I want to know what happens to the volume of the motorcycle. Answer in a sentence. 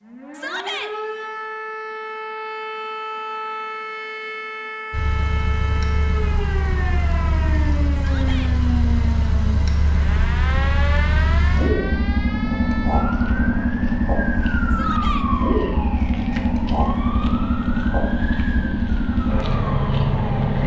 The loudness of the motorcycle goes up.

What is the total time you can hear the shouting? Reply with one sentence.
The shouting can be heard for 2 seconds in total.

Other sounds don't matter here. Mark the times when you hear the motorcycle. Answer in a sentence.
You can hear the motorcycle from 4.9 to 20.6 s.